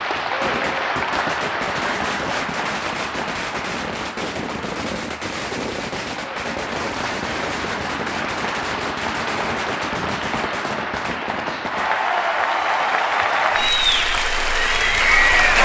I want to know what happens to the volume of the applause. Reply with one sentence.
The volume of the applause goes down, then up.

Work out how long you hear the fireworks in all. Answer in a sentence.
The fireworks can be heard for 12 seconds in total.